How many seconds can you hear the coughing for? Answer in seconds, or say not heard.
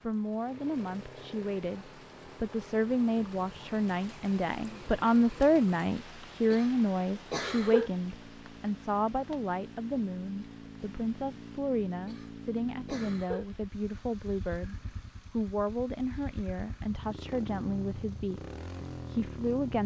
3 s.